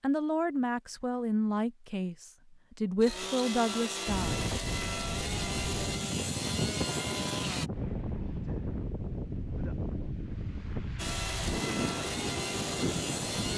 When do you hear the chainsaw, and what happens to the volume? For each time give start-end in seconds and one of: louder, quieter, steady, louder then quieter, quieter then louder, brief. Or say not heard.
3.0-7.7 steady
10.9-13.5 brief.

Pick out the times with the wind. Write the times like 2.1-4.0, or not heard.
4.0-13.5.